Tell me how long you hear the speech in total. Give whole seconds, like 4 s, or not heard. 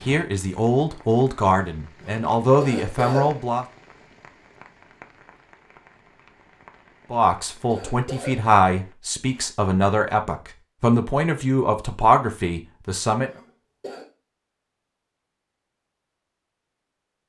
10 s.